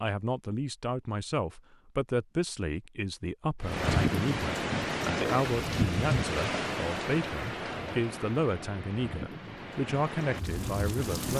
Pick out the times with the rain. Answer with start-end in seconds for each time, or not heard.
3.6-11.3.